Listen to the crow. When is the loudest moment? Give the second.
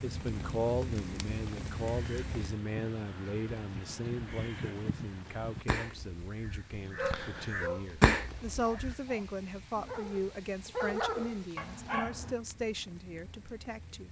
8 s.